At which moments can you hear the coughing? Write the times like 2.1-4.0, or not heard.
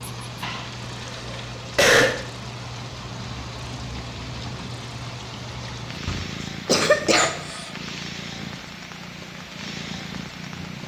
0.4-2.1, 6.0-7.3.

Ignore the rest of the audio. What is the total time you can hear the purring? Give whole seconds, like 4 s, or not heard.
11 s.